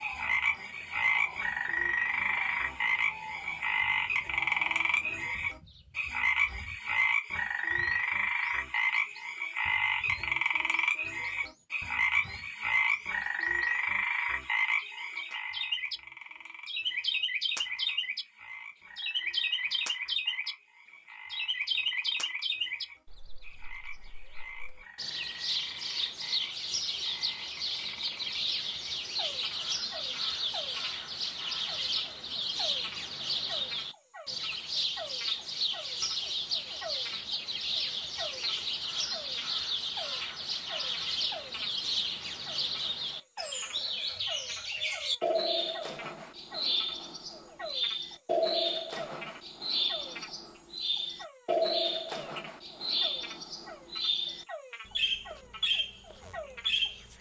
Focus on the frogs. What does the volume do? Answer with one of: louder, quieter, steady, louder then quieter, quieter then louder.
quieter.